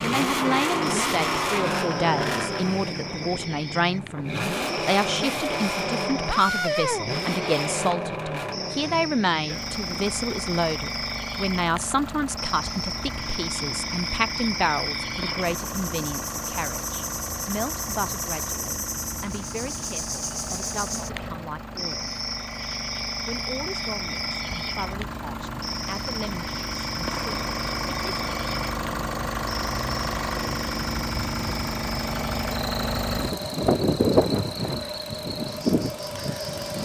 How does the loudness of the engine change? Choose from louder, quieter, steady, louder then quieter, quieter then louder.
quieter then louder.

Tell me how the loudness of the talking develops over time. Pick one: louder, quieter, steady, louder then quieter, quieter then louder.
quieter.